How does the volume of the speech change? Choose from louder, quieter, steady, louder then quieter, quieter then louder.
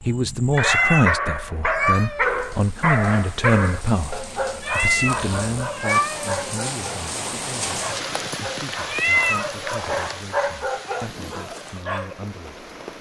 quieter.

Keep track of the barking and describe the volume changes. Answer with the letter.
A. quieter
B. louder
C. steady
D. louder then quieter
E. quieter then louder
E.